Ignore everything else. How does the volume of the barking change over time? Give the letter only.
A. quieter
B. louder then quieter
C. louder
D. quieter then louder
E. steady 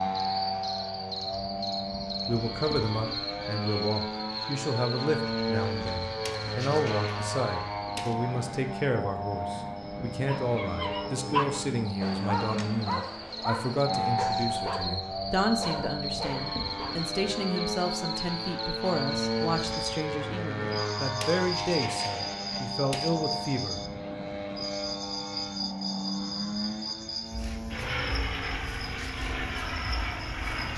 A.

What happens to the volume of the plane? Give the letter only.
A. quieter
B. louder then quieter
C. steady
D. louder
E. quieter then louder
C.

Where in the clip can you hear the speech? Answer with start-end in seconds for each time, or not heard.
2.2-23.8.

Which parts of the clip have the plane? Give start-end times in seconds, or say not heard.
0.0-30.7.